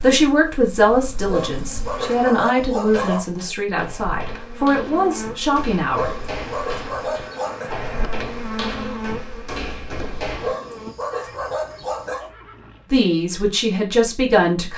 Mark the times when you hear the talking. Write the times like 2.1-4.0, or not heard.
0.0-6.1, 12.9-14.7.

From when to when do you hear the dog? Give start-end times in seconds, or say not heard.
1.2-3.2, 5.9-7.7, 10.4-12.3.